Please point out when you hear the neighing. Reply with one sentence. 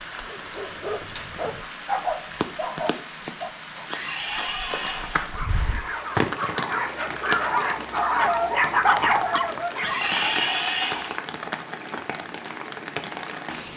The neighing can be heard from 3.9 to 5.3 s and from 9.8 to 11.2 s.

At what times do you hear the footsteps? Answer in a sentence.
You can't hear the footsteps here.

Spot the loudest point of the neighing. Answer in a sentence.
The volume of the neighing peaks at 10 seconds.